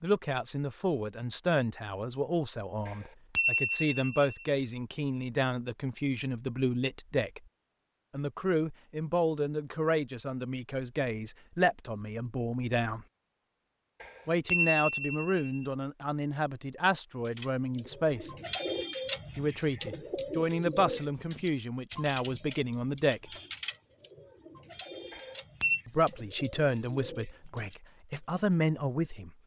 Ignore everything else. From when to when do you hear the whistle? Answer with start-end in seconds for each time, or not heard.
not heard.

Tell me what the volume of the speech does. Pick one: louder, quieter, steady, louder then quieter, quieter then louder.
steady.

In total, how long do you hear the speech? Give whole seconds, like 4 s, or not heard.
24 s.